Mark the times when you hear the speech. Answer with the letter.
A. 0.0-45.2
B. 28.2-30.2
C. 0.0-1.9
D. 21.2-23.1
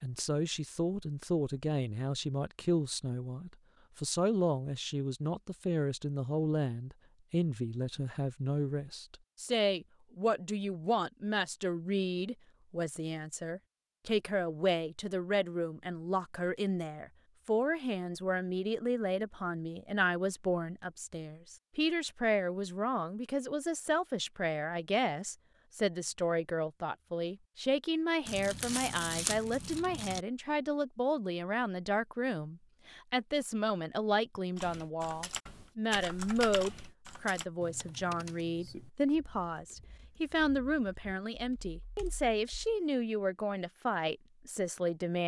A.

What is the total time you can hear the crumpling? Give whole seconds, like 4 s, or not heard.
2 s.